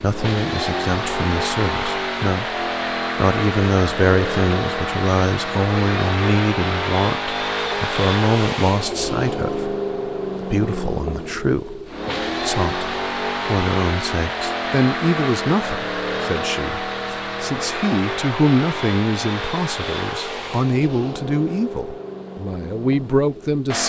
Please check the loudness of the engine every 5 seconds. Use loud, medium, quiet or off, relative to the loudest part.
loud, loud, loud, loud, medium.